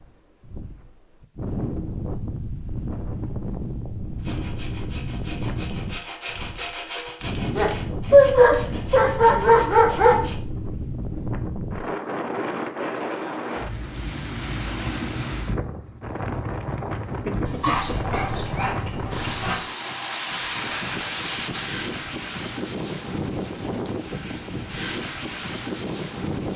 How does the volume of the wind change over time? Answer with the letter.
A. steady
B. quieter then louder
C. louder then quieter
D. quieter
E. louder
A.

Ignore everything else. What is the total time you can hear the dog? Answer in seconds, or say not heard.
5 s.